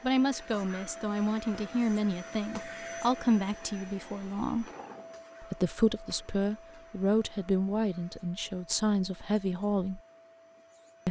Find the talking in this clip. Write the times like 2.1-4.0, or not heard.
0.0-4.7, 5.4-10.0.